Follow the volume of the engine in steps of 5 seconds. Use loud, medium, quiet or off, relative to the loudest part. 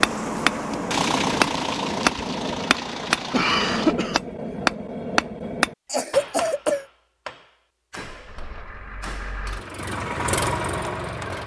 loud, medium, loud.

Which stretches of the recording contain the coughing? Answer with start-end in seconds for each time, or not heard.
3.3-4.2, 5.9-6.8.